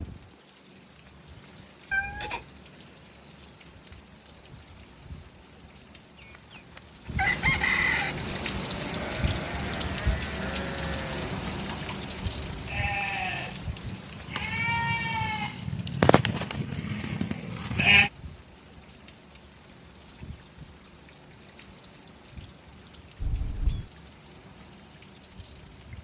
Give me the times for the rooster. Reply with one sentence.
The rooster can be heard from 6.2 to 8.2 s.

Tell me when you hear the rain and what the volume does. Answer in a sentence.
The rain can be heard from 0.0 to 25.9 s, getting louder then quieter.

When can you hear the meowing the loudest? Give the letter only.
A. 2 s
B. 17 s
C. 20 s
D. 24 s
A.